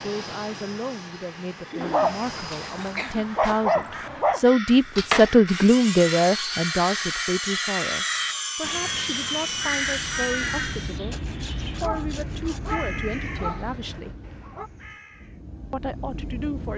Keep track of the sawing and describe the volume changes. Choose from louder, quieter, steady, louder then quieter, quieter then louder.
quieter.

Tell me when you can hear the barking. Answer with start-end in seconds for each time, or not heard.
1.8-4.5, 11.8-14.7.